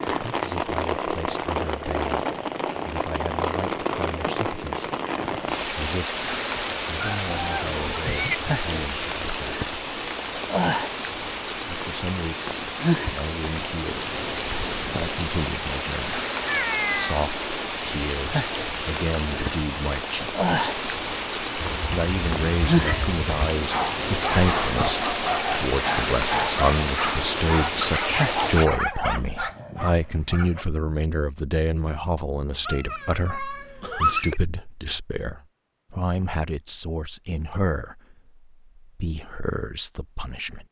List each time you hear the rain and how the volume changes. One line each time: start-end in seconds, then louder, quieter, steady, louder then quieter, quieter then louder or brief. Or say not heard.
0.0-28.7 steady.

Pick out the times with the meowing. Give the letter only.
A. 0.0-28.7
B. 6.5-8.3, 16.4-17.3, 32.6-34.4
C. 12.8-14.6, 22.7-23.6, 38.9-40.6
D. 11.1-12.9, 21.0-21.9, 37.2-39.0
B.